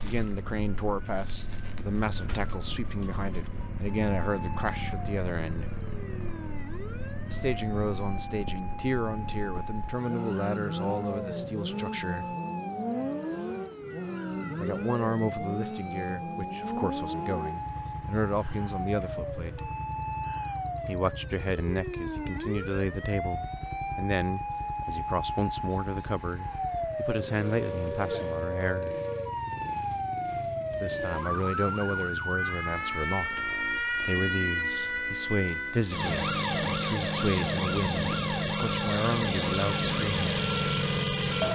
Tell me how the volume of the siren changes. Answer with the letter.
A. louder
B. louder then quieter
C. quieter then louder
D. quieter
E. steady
A.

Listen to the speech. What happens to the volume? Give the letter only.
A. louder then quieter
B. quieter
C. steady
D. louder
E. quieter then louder
C.